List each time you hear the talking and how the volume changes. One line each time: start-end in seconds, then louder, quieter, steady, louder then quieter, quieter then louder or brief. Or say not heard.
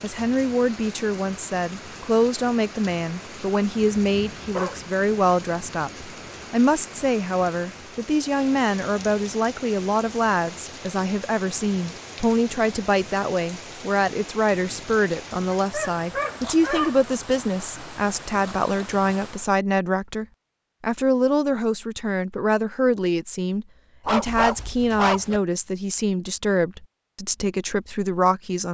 0.0-28.6 steady.